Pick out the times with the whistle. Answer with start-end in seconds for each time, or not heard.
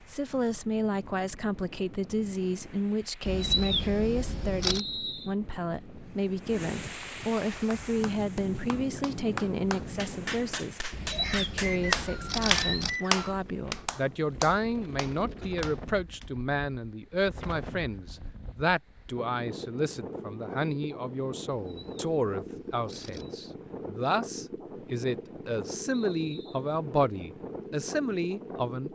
4.7-5.3, 11.6-13.4, 25.9-26.6.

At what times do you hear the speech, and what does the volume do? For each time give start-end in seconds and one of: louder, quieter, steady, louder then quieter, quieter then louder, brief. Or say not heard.
0.1-28.9 steady.